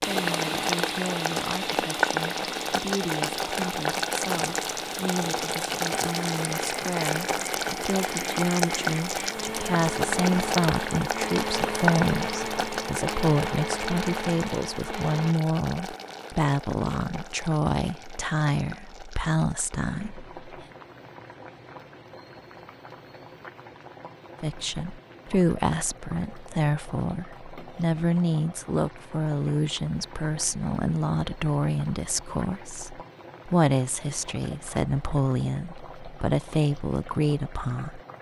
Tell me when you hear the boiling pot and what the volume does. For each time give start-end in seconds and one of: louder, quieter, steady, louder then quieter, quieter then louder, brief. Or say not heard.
0.0-38.1 quieter.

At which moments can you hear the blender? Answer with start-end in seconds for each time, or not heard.
0.0-15.3.